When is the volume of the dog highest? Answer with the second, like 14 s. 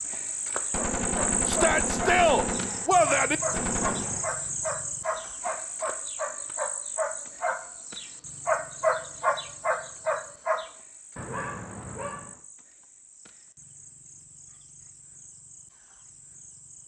9 s.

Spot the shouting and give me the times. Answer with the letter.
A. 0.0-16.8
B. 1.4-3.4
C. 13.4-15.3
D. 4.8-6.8
B.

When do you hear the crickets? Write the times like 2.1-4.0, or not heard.
0.0-16.8.